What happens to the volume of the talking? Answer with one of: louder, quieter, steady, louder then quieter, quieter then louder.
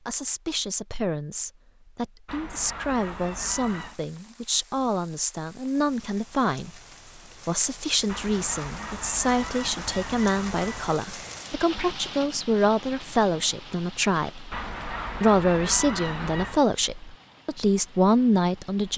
louder.